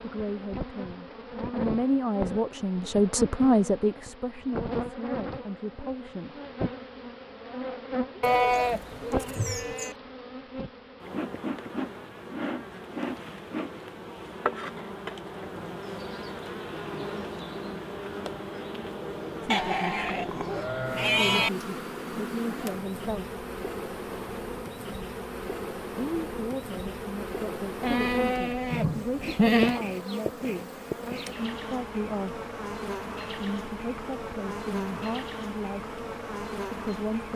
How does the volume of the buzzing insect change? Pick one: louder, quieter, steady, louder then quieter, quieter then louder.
steady.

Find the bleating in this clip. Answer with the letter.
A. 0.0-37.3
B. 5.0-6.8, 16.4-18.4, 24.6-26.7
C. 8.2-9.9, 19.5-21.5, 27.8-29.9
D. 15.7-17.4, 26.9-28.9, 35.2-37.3
C.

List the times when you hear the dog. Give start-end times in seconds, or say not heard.
not heard.